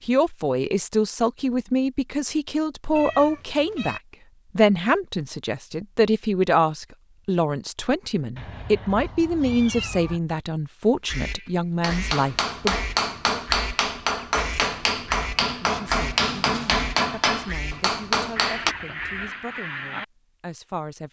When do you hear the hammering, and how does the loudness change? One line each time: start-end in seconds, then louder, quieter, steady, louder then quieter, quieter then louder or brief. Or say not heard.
11.8-18.8 steady.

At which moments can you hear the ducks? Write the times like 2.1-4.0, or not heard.
11.0-20.1.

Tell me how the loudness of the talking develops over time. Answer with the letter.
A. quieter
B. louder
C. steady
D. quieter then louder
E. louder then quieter
A.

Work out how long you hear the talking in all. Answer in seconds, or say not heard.
18 s.